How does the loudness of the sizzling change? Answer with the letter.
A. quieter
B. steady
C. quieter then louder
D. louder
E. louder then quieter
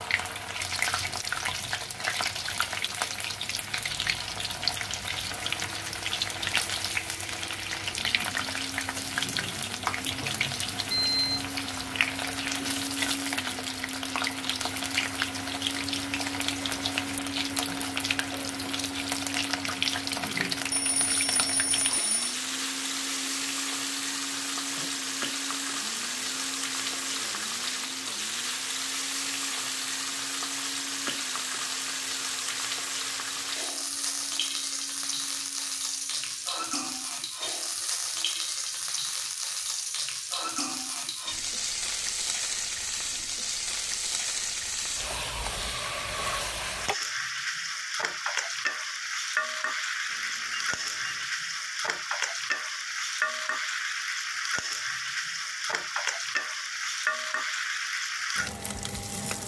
B.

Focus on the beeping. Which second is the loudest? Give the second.
11 s.